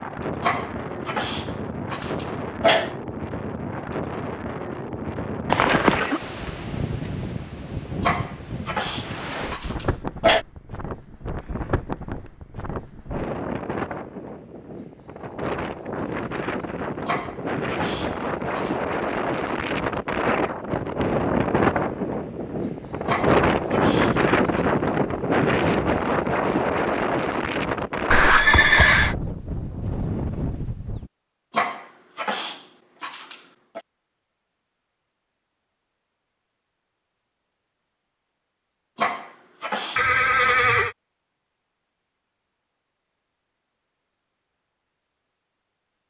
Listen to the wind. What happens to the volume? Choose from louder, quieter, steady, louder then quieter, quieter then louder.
louder.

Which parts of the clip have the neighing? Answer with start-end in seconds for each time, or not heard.
5.5-6.2, 28.1-29.1, 40.0-41.0.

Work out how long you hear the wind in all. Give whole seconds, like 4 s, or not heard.
31 s.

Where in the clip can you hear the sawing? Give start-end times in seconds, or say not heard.
not heard.